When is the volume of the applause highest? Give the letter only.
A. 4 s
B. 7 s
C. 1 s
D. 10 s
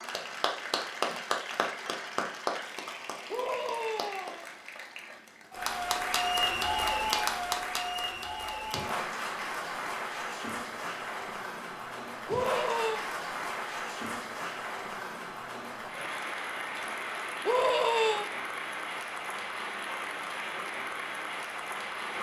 B.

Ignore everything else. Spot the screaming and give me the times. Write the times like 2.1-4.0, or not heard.
3.3-4.5, 12.2-13.1, 17.4-18.3.